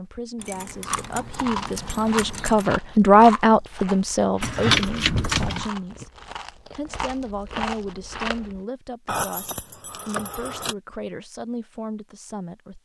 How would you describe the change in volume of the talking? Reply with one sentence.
The loudness of the talking goes up, then down.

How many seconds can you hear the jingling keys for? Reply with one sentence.
You can hear the jingling keys for 5 seconds altogether.